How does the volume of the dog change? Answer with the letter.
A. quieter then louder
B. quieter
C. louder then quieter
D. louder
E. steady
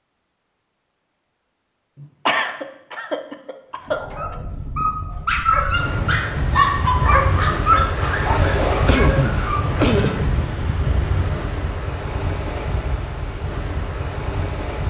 C.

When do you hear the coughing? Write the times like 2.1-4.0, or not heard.
2.0-4.3, 8.3-10.2.